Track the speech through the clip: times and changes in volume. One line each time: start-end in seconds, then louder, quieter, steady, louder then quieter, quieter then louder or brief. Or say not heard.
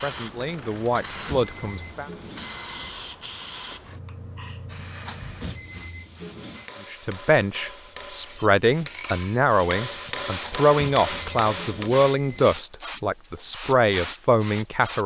0.0-2.1 brief
6.9-15.0 steady.